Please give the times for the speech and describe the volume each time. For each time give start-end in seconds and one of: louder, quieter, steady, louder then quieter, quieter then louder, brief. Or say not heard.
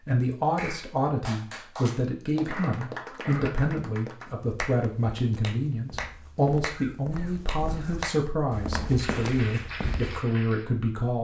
0.1-11.1 steady.